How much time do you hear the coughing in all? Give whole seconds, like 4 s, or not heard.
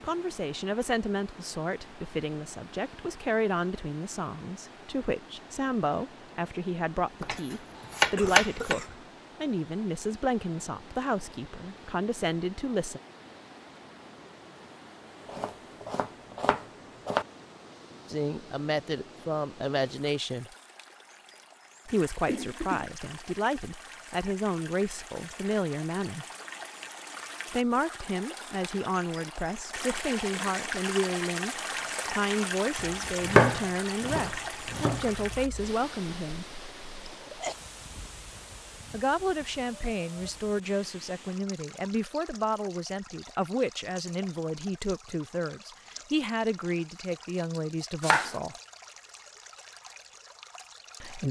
3 s.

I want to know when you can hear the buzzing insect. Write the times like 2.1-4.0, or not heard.
not heard.